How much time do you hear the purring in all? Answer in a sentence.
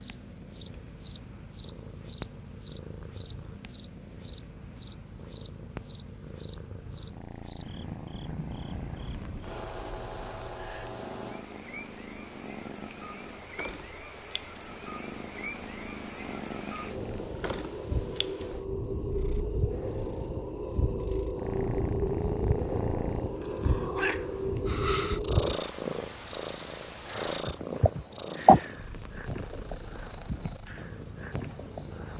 The purring can be heard for 32 seconds in total.